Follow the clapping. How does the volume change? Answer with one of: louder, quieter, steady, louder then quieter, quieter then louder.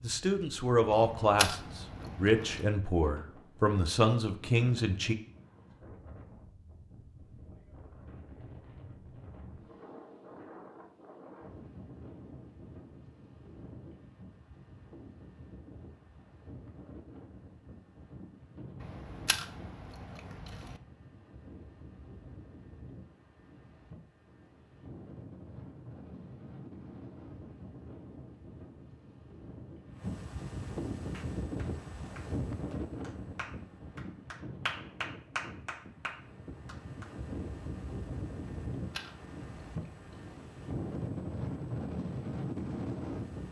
louder then quieter.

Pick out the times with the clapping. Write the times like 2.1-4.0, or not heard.
31.1-37.1.